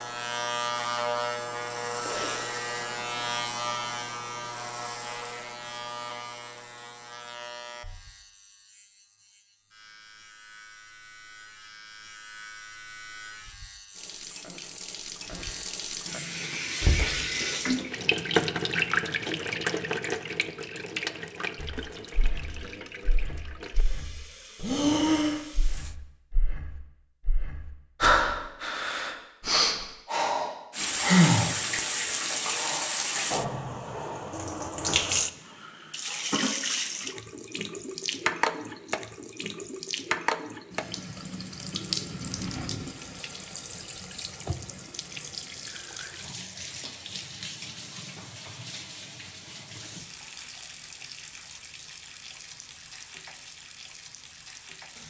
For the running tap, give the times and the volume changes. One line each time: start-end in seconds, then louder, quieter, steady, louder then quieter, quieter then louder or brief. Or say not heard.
13.9-25.9 louder then quieter
30.7-55.0 quieter.